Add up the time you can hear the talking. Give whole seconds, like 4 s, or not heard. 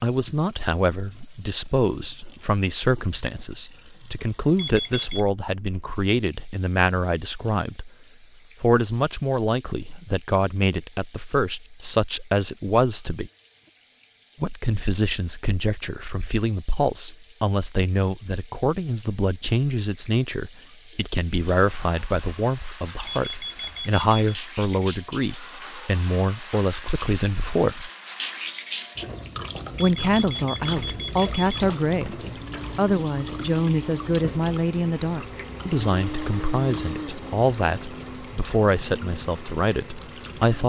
37 s.